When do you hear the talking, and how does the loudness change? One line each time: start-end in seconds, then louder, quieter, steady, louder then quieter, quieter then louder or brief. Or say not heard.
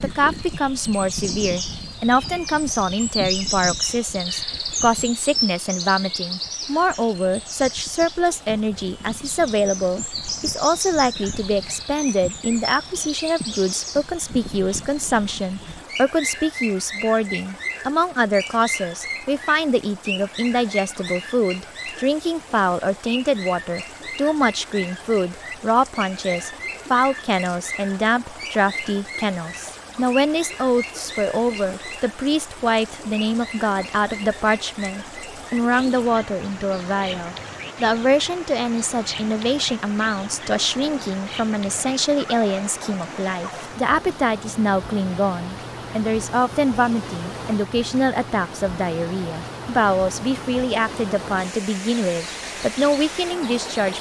0.0-53.9 steady.